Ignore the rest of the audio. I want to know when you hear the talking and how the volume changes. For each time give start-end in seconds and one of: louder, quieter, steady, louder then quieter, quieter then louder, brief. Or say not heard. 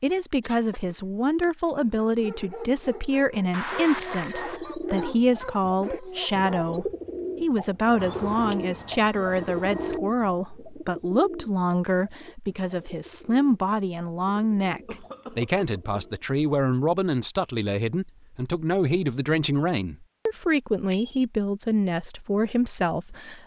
0.0-23.4 steady.